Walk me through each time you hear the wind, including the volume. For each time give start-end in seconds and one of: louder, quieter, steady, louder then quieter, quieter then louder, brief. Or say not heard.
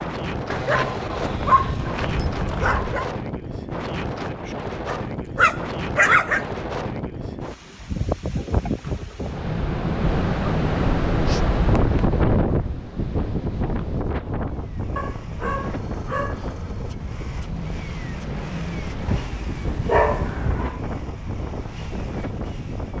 0.0-22.9 louder then quieter.